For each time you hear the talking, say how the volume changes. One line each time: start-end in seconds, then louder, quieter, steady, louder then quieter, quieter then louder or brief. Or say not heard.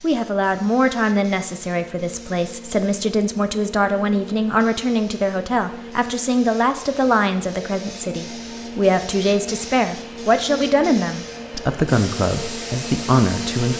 0.0-13.7 steady.